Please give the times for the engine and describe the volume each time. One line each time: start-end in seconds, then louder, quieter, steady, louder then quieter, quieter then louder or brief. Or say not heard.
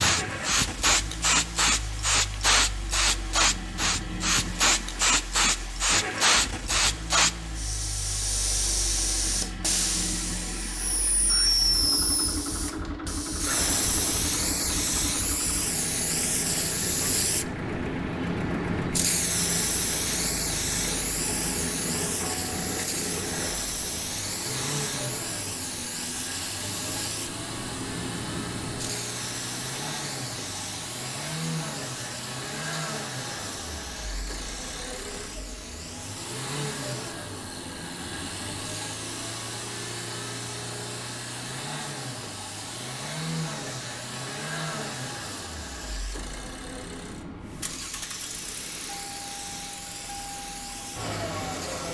0.0-51.8 steady.